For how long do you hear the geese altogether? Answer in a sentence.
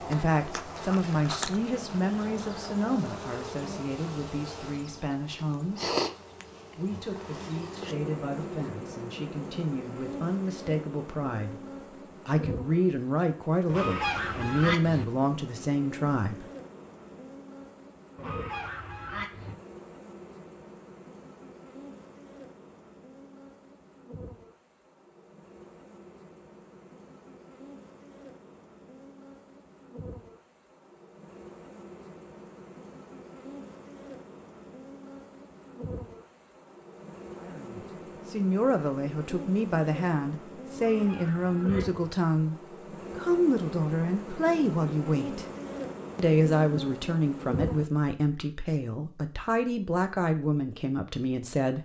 You can hear the geese for 4 seconds altogether.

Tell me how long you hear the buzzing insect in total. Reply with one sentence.
You can hear the buzzing insect for 48 seconds altogether.